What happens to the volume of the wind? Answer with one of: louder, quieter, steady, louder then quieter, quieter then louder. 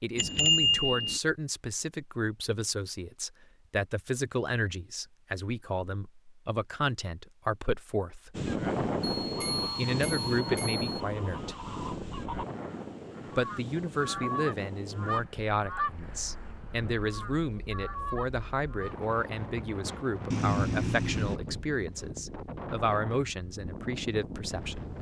quieter then louder.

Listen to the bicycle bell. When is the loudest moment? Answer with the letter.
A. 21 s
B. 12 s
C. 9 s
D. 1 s
D.